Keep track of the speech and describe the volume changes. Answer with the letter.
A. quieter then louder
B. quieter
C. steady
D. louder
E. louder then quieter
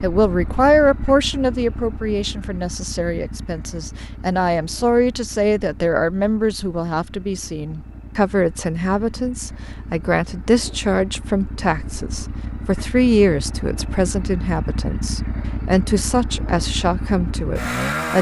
C.